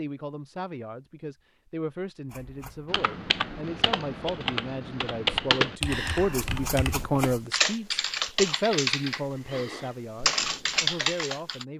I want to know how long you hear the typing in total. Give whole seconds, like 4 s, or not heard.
9 s.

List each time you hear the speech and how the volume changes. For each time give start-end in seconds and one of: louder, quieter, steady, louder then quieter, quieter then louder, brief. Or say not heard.
0.0-11.7 louder then quieter.